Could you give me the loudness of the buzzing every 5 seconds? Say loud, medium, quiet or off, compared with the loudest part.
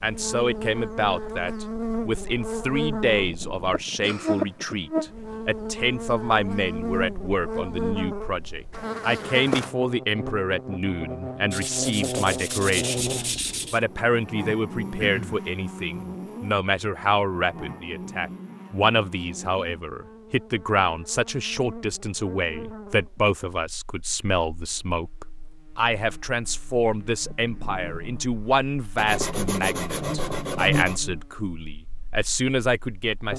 loud, loud, loud, medium, quiet, quiet, loud.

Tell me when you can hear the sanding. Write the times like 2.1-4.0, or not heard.
11.5-13.8, 28.9-31.0.